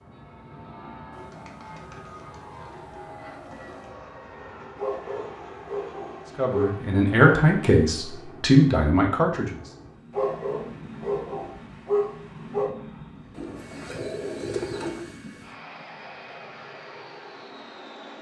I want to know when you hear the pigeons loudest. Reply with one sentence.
The volume of the pigeons peaks at 15 seconds.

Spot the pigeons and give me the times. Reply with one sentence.
The pigeons can be heard from 1.1 to 4.0 s and from 13.3 to 15.1 s.